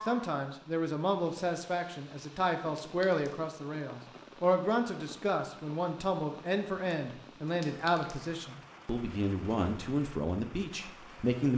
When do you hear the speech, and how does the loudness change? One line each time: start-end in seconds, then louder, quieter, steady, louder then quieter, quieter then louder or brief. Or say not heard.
0.1-11.5 steady.